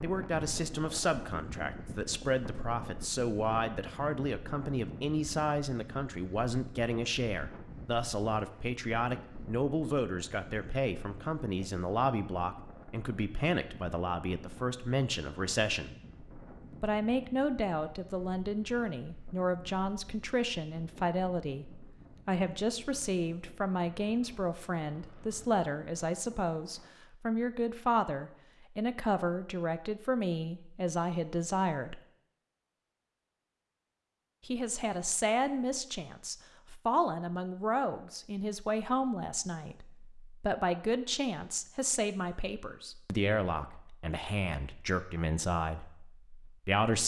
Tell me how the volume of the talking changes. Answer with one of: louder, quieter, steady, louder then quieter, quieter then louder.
steady.